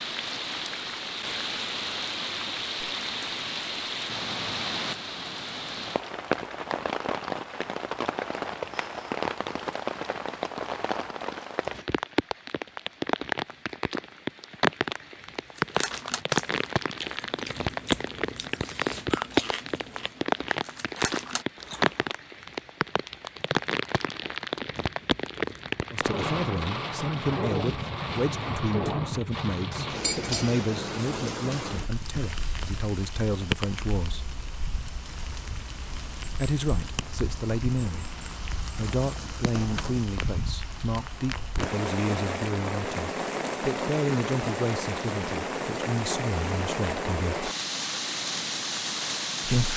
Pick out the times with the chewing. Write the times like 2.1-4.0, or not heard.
15.6-22.1.